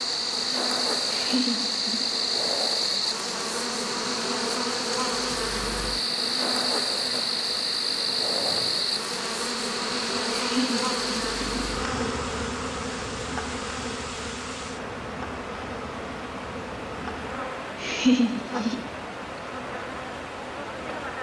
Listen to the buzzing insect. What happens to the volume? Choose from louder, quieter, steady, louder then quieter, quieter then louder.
quieter.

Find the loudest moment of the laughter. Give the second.
18 s.